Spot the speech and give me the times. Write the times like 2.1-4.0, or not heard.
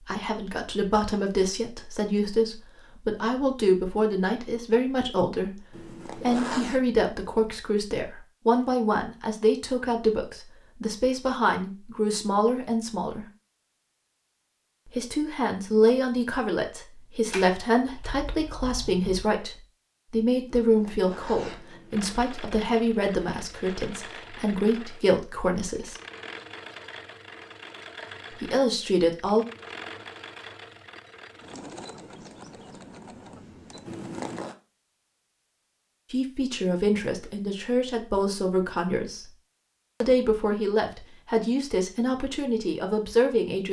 0.1-13.2, 14.8-25.9, 28.3-29.4, 36.1-39.3, 40.0-43.6.